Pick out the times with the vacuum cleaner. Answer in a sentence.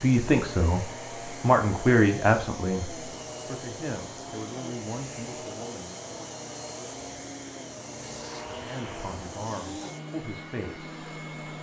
The vacuum cleaner can be heard from 0.0 to 11.5 s.